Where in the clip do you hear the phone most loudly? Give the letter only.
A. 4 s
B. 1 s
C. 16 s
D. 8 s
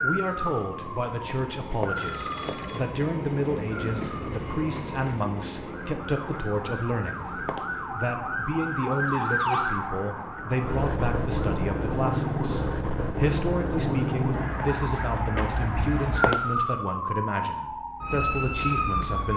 C.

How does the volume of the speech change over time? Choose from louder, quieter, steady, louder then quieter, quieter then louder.
steady.